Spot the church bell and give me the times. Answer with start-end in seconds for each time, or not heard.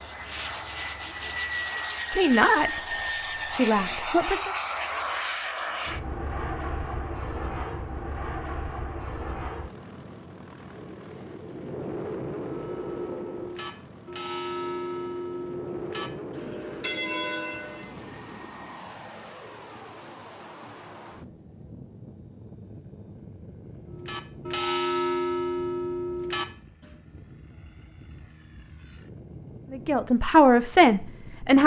12.4-17.9, 23.9-26.9.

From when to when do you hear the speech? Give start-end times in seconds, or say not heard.
2.1-4.5, 29.7-31.6.